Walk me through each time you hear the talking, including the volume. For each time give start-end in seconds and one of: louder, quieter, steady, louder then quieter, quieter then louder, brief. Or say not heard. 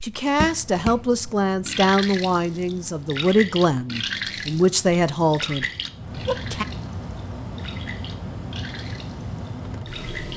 0.0-6.7 steady.